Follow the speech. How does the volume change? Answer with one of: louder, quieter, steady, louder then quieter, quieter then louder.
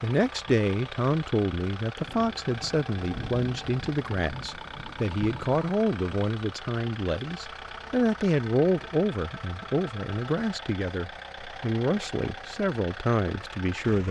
steady.